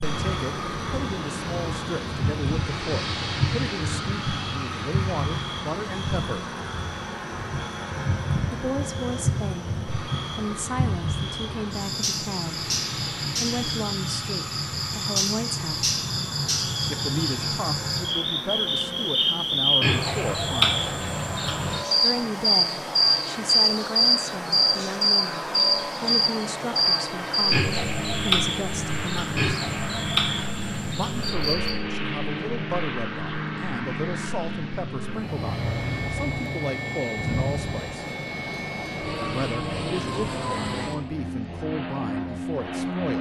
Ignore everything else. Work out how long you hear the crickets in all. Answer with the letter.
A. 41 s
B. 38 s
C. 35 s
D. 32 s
D.